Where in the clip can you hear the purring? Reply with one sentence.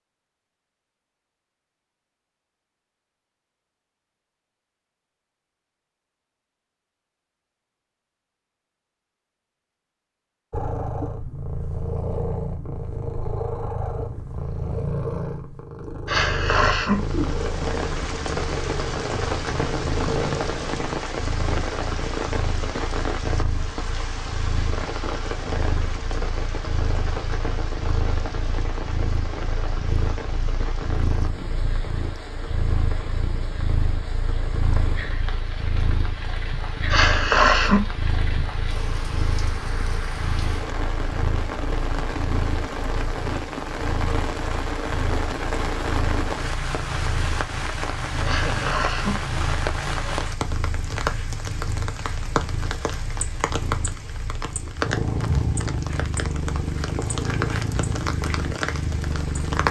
The purring can be heard from 10.5 to 59.6 s.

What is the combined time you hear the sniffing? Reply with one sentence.
You can hear the sniffing for 3 seconds altogether.